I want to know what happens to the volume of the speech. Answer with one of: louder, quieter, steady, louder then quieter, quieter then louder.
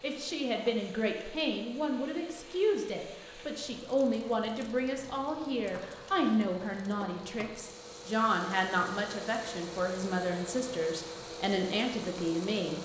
steady.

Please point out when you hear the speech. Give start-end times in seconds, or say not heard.
0.0-12.8.